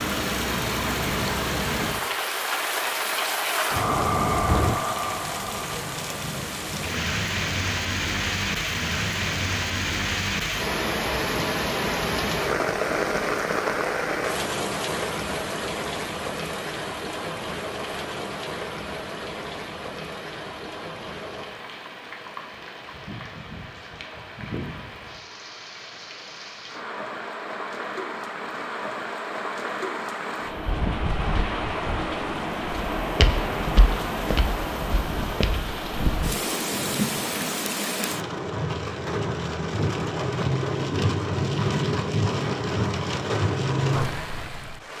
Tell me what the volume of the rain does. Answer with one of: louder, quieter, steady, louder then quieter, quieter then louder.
quieter then louder.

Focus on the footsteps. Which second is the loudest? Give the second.
33 s.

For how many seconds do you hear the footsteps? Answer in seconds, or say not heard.
3 s.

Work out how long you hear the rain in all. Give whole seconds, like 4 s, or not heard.
45 s.